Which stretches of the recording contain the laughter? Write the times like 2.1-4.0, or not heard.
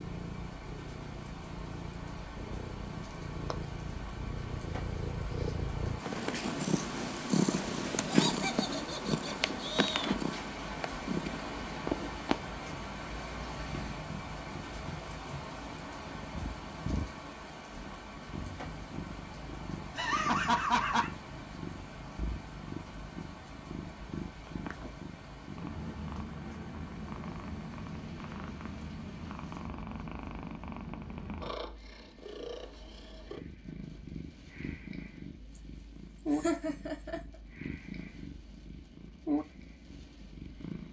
8.1-10.1, 19.9-21.1, 36.3-37.2.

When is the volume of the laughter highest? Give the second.
21 s.